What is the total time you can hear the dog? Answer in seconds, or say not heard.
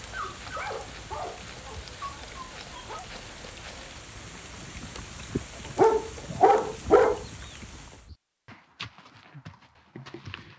5 s.